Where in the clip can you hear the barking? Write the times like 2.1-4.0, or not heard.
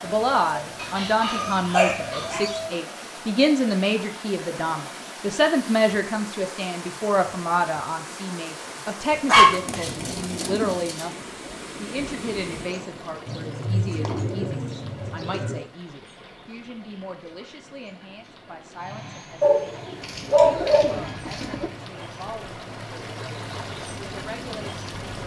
0.8-2.5, 9.2-11.1, 19.4-21.1.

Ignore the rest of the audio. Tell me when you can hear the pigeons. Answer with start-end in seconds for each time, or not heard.
0.1-2.7, 9.4-10.9, 13.2-15.7, 20.0-21.7.